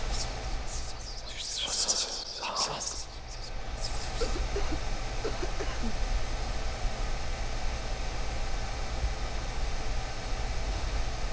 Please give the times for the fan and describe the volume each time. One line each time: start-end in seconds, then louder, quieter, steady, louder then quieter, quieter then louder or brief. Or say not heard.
0.0-11.2 louder.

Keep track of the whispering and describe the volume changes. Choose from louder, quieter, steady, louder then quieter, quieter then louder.
louder then quieter.